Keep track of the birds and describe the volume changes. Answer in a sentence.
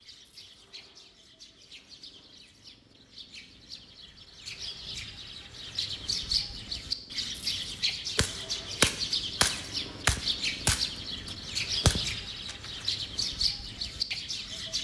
The loudness of the birds goes up.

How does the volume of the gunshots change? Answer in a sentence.
The loudness of the gunshots goes down, then up.